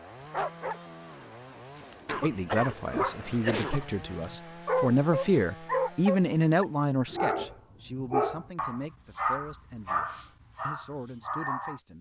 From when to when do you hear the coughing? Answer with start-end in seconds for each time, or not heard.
2.0-3.9.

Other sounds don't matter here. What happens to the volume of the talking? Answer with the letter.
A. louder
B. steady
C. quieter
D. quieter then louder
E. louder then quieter
E.